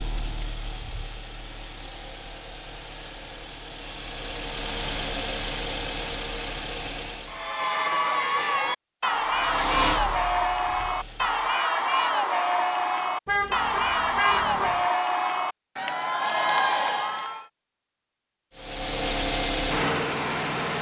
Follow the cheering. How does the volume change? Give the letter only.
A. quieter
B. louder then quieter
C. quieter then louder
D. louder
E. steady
E.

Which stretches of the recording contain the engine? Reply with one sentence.
You can hear the engine from 0.0 to 7.5 s, from 9.0 to 11.6 s and from 18.6 to 20.7 s.